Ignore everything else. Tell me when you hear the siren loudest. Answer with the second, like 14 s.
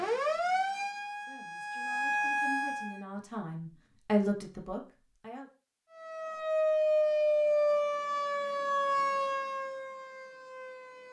7 s.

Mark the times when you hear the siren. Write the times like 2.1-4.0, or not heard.
0.0-3.0, 5.9-11.0.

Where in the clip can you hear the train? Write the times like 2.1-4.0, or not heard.
not heard.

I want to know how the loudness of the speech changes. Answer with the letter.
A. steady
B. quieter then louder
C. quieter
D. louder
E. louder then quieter
E.